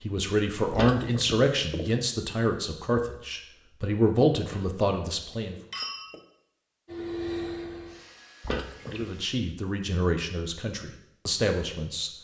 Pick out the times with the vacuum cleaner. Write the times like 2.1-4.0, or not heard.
6.8-9.3.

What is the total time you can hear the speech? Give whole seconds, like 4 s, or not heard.
9 s.